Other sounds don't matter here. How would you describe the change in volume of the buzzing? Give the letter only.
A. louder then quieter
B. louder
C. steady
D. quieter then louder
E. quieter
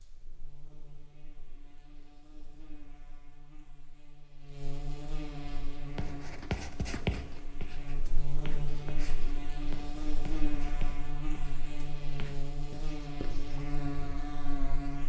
B.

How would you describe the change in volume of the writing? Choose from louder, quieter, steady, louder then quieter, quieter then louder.
quieter.